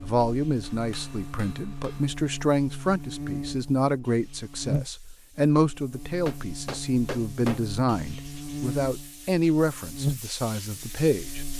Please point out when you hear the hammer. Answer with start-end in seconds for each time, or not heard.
0.6-2.0, 6.2-7.7.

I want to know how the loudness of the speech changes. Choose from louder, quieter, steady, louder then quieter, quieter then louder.
steady.